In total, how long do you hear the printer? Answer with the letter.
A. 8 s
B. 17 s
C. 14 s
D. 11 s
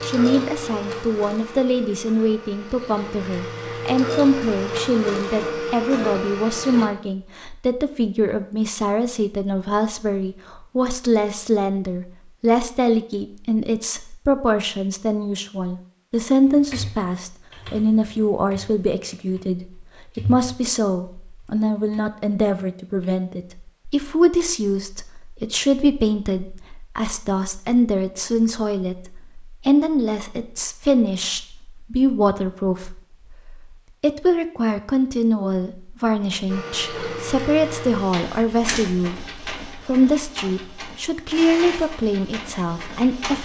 C.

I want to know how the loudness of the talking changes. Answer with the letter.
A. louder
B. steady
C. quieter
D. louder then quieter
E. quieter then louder
B.